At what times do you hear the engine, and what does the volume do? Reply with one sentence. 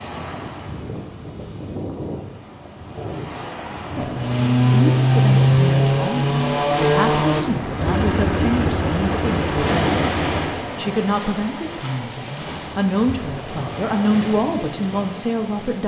You can hear the engine from 4.1 to 10.7 s, getting quieter.